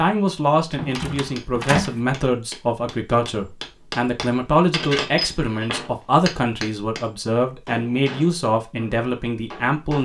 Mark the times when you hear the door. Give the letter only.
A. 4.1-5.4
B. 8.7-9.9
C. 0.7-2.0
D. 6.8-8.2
C.